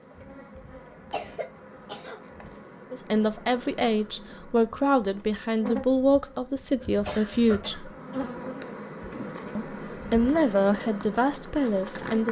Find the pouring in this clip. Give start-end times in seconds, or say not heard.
not heard.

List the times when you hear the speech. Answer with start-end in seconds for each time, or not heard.
2.9-7.9, 9.6-12.2.